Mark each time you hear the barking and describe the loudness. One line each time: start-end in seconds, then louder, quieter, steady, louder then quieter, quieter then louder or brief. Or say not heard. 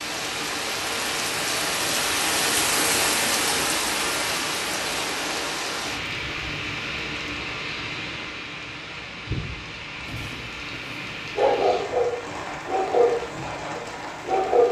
10.1-14.6 louder then quieter.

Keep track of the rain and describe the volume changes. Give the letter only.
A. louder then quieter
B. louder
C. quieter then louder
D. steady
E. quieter
E.